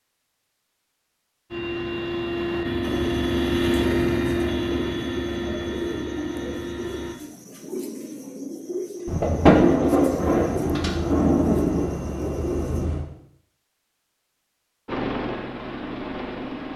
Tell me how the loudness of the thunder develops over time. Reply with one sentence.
The volume of the thunder goes down.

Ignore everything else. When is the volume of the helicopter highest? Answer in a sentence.
The volume of the helicopter peaks at 4 seconds.